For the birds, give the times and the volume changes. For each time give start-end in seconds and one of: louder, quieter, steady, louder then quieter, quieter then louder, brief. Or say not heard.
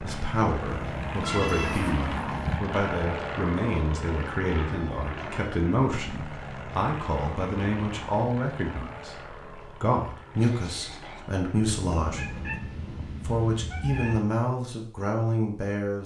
not heard.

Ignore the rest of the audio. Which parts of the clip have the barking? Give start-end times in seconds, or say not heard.
not heard.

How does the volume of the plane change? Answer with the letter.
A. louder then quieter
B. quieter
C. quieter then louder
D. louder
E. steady
B.